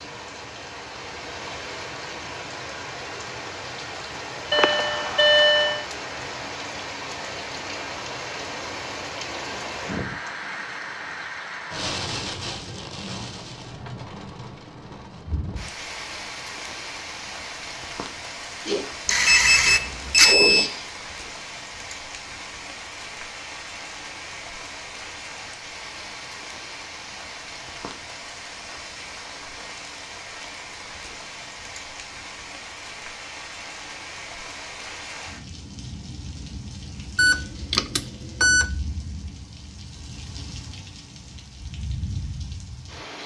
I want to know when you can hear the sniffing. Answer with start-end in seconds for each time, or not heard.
18.6-20.9.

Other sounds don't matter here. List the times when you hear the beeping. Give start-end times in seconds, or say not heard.
4.5-5.8, 19.1-20.7, 37.1-38.7.